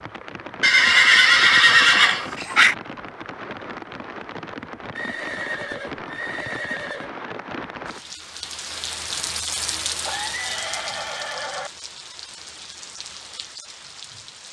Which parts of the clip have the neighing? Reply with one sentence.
The neighing can be heard from 0.6 to 2.8 s, from 5.0 to 7.1 s and from 10.0 to 11.7 s.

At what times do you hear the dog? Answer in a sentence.
You can't hear the dog here.